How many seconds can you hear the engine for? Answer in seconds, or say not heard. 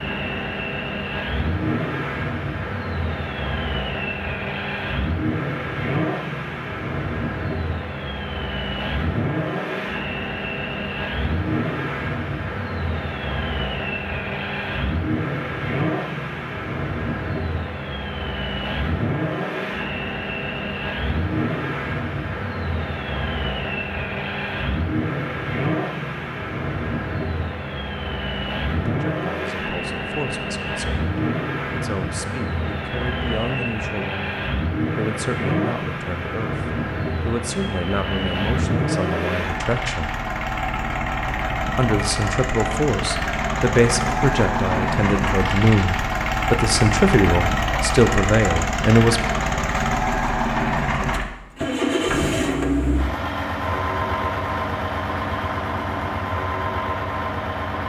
58 s.